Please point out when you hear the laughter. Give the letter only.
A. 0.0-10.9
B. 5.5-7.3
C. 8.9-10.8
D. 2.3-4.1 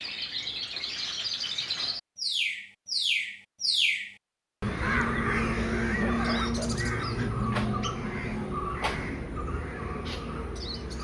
B.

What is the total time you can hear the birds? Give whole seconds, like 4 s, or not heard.
11 s.